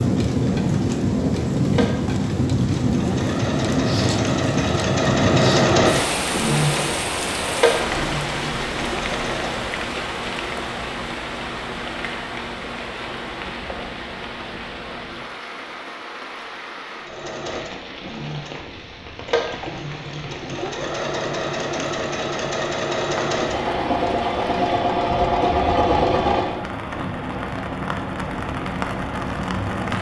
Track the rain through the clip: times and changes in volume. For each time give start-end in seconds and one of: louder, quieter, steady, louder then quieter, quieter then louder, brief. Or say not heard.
0.0-29.9 quieter then louder.